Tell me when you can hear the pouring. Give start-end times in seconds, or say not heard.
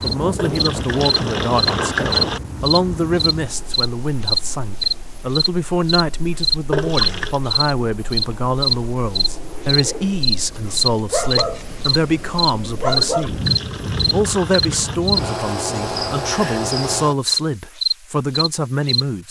0.3-2.4, 6.7-7.4, 12.9-14.9.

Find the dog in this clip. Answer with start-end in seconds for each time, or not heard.
10.6-12.0, 12.8-13.3.